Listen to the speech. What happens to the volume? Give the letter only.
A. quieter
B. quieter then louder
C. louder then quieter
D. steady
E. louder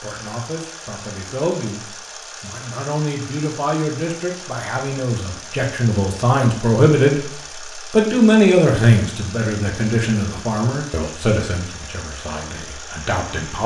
C.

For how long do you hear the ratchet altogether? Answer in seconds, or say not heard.
not heard.